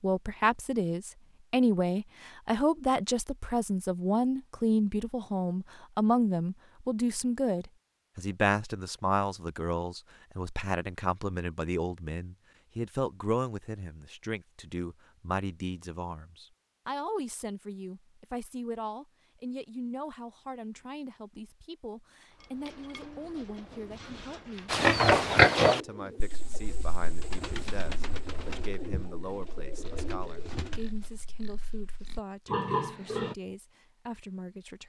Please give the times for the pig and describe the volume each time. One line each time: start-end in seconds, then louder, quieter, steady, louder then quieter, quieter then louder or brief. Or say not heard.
24.6-33.4 quieter then louder.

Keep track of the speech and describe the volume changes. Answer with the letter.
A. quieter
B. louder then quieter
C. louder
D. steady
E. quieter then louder
A.